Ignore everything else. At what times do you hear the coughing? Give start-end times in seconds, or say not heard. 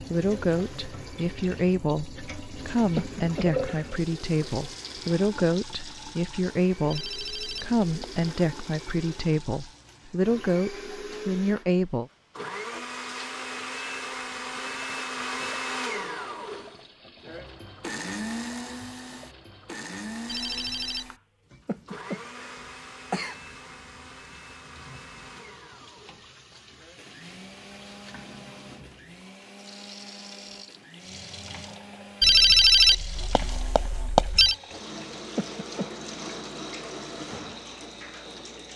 3.0-3.9, 21.6-23.4, 35.4-35.9.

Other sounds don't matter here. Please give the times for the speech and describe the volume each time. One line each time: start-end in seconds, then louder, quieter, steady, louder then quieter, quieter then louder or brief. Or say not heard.
0.0-12.1 steady.